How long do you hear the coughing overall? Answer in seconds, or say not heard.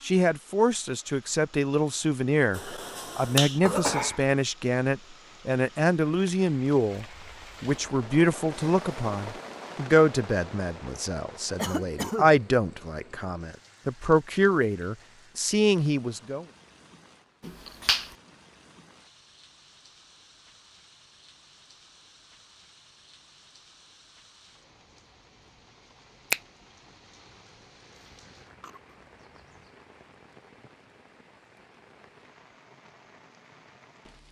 3 s.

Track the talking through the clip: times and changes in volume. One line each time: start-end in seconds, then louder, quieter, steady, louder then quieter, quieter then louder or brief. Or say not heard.
0.0-16.4 steady.